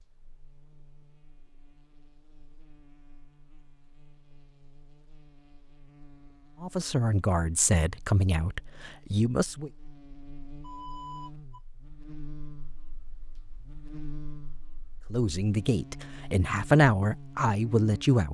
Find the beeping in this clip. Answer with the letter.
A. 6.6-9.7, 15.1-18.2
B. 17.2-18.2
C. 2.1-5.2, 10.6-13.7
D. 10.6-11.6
D.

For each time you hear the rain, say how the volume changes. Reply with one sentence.
You can't hear the rain here.